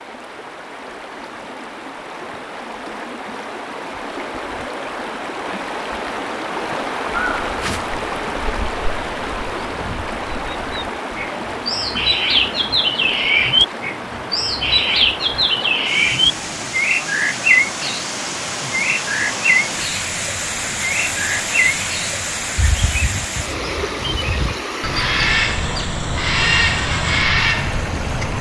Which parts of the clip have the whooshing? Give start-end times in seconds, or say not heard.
7.5-8.0.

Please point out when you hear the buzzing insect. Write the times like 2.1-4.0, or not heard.
not heard.